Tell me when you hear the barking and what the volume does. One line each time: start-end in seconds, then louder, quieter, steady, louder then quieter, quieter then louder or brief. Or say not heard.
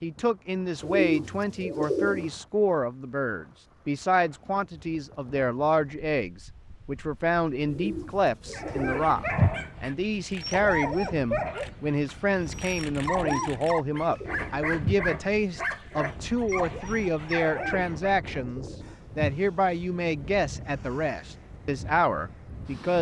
8.5-18.1 steady.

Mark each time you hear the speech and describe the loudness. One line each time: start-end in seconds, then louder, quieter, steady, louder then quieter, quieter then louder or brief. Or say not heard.
0.0-22.9 steady.